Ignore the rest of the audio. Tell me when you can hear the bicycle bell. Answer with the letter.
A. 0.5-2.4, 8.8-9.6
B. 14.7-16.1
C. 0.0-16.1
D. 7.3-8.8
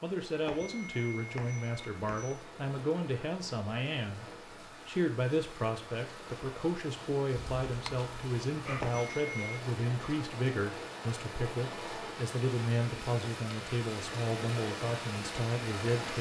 A.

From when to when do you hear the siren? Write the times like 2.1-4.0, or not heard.
not heard.